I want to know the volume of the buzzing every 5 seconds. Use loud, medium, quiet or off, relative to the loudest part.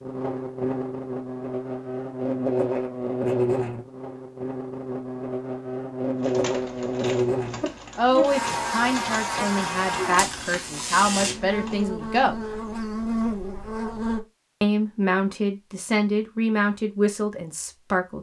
loud, loud, loud, off.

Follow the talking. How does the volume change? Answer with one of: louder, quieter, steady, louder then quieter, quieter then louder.
steady.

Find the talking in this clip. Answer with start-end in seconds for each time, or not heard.
8.0-12.3, 14.6-18.1.